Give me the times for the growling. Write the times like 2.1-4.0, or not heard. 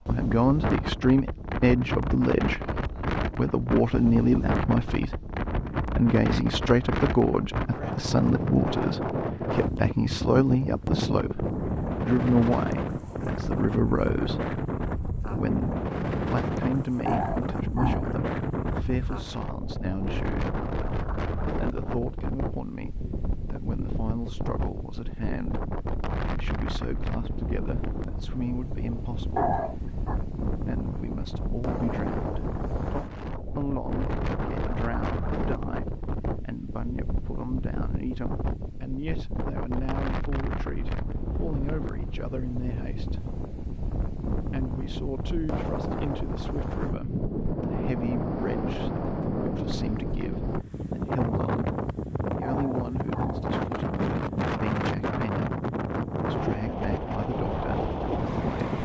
17.1-18.1, 29.4-30.2, 52.4-53.5.